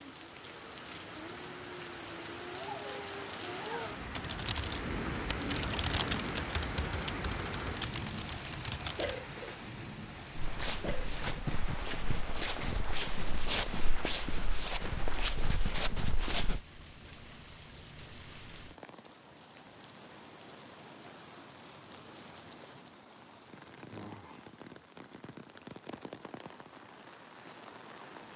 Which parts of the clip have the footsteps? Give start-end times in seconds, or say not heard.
10.3-16.6.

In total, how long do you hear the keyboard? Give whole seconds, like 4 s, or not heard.
5 s.